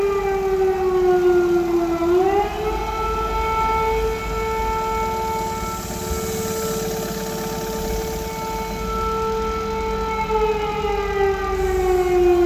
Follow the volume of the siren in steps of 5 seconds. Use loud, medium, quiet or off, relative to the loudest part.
loud, medium, loud.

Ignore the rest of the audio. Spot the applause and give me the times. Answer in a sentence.
You can't hear the applause here.